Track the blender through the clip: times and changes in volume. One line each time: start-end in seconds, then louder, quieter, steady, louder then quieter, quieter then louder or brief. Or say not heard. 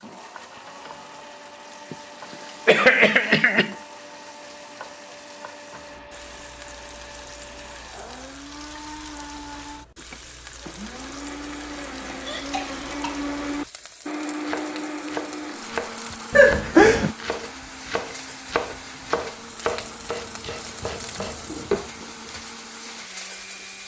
0.0-23.8 louder then quieter.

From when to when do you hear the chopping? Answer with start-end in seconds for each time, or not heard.
14.4-22.4.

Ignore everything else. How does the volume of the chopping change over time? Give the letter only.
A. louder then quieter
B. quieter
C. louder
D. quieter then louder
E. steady
E.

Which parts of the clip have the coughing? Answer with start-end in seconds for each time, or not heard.
2.6-3.8, 12.2-13.2, 16.3-17.1.